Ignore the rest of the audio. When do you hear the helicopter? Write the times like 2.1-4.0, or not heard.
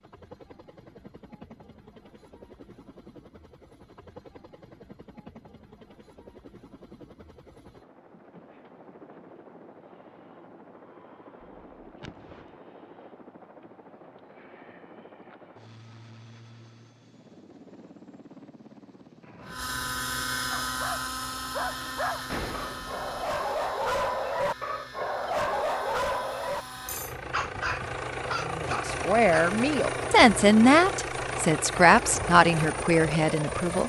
0.0-33.8.